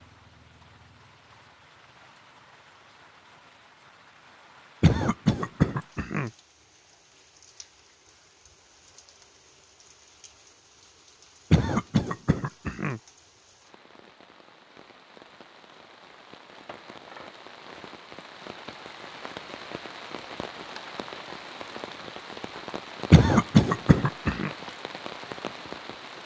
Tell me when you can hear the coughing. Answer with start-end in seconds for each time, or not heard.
4.8-6.3, 11.5-13.0, 23.1-24.5.